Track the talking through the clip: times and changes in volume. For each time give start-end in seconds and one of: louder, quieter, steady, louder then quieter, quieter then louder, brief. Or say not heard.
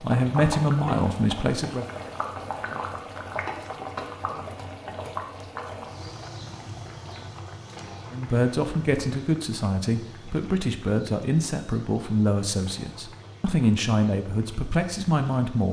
0.0-1.9 brief
8.1-15.6 steady.